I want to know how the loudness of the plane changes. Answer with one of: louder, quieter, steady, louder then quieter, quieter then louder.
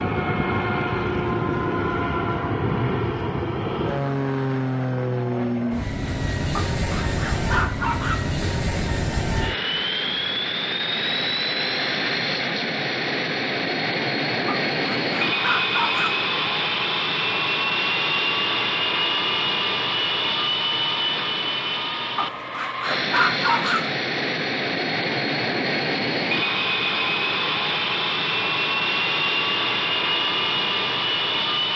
steady.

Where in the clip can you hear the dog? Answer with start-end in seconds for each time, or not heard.
6.5-8.2, 14.4-16.2, 22.1-23.9.